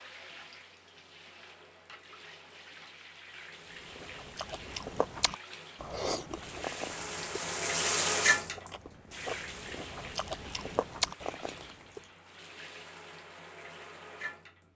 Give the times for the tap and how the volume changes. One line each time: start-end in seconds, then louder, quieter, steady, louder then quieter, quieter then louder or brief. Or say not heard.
0.0-14.7 louder then quieter.